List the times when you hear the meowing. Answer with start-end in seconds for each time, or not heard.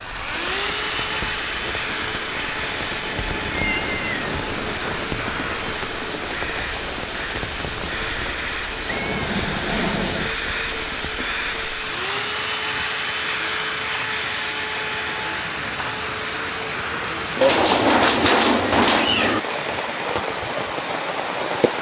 3.1-4.8, 8.8-10.3, 17.4-19.4.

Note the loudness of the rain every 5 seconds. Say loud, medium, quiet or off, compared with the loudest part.
medium, medium, medium, loud, loud.